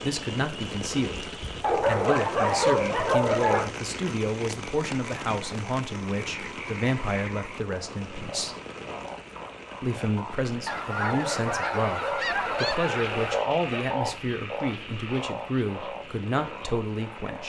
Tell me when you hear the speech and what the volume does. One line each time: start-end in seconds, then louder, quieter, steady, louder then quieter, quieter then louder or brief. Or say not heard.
0.0-8.6 steady
9.8-17.4 steady.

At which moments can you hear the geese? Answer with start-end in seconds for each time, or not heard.
10.7-13.4.